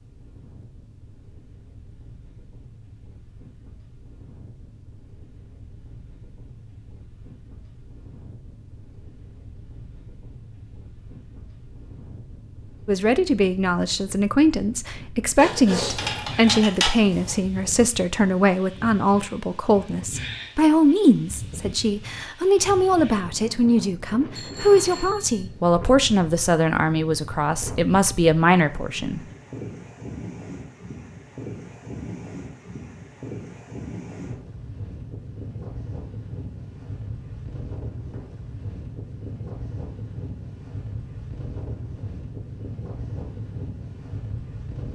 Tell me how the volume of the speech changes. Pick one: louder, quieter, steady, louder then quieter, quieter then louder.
steady.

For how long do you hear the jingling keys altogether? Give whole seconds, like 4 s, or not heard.
2 s.